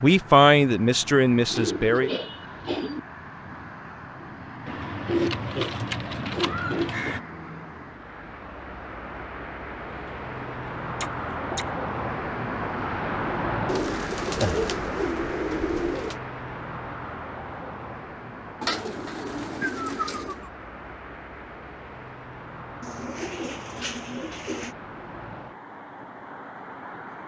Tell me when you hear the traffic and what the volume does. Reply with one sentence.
You can hear the traffic from 0.0 to 27.2 s, getting louder then quieter.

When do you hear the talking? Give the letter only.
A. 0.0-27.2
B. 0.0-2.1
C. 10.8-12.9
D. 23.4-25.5
B.